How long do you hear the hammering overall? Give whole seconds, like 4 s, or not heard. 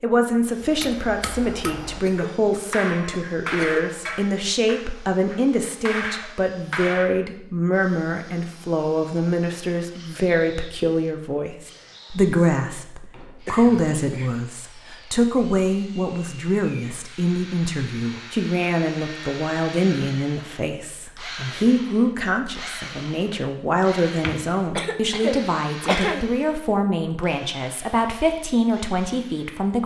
7 s.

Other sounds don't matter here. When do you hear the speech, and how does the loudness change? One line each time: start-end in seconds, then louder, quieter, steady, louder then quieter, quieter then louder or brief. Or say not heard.
0.0-29.8 steady.